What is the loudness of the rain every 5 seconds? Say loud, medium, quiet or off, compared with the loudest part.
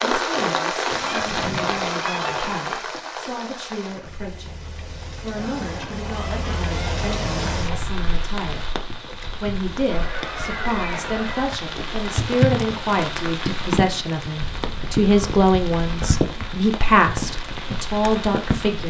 loud, medium, loud, loud.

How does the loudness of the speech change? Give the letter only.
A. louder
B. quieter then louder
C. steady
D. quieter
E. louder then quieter
A.